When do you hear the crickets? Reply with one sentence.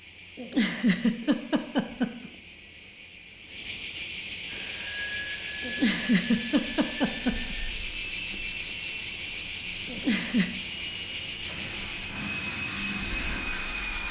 You can hear the crickets from 0.0 to 14.0 s.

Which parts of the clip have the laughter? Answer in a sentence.
You can hear the laughter from 0.3 to 2.3 s, from 5.6 to 7.5 s and from 9.8 to 10.5 s.